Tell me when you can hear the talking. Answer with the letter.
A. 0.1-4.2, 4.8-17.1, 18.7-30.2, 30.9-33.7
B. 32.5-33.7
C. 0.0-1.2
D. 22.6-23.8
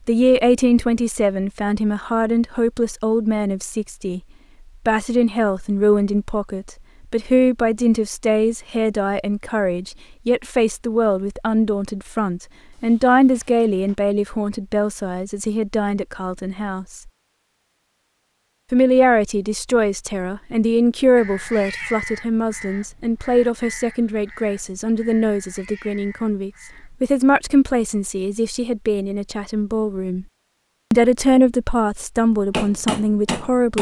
A.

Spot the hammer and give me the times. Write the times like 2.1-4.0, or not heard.
32.5-33.7.